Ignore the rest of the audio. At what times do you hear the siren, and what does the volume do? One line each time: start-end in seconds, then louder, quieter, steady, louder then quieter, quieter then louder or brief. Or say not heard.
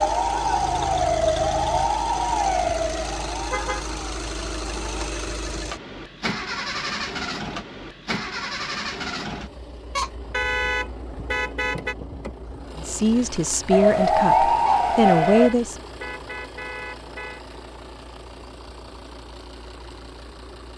0.0-5.1 quieter
13.7-15.5 brief.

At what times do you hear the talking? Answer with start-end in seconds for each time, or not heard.
12.8-15.8.